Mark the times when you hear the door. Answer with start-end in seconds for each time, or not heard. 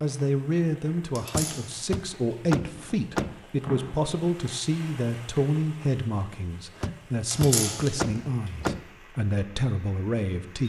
1.3-3.4, 6.8-8.8.